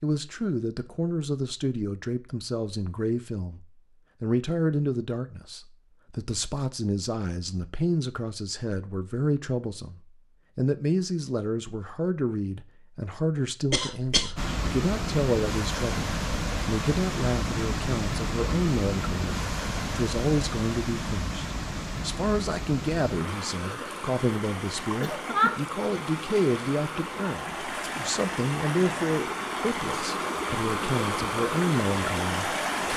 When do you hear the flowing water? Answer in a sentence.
You can hear the flowing water from 14.3 to 32.9 s.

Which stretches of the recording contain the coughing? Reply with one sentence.
The coughing can be heard from 13.7 to 14.6 s and from 25.0 to 25.6 s.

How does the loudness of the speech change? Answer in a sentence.
The volume of the speech stays about the same.